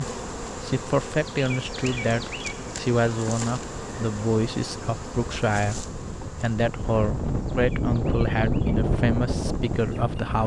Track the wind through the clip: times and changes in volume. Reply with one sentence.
The wind can be heard from 0.0 to 10.4 s, getting louder.